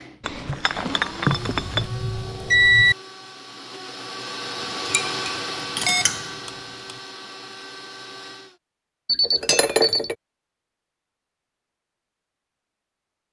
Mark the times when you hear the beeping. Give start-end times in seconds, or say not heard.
1.3-3.0, 5.8-7.0, 9.1-10.1.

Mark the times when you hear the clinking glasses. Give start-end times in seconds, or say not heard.
0.2-1.9, 4.6-6.4, 9.2-10.2.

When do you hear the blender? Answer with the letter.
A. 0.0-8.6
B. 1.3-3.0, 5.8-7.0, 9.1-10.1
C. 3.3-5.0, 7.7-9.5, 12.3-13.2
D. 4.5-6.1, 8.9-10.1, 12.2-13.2
A.